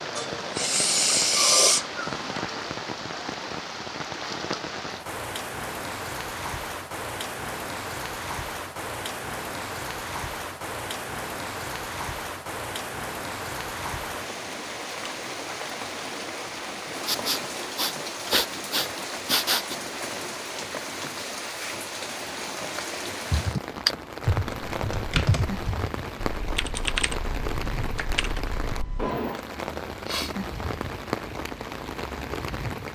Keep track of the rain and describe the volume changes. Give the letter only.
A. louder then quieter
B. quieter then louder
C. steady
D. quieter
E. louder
C.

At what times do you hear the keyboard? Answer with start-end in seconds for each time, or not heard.
23.3-29.1.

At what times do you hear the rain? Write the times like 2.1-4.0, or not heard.
0.0-32.9.